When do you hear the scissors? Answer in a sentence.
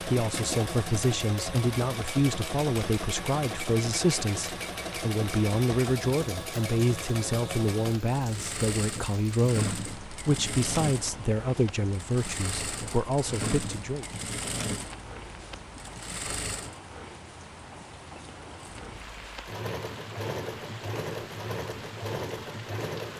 You can't hear the scissors here.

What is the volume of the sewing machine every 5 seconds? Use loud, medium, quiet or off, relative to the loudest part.
loud, loud, loud, medium, loud.